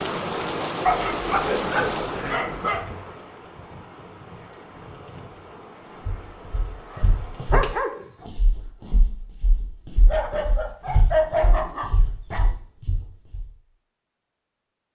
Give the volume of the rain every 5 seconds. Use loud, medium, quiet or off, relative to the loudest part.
loud, medium, off.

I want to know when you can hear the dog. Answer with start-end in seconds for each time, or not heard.
0.8-2.9, 6.9-8.2, 10.1-12.4.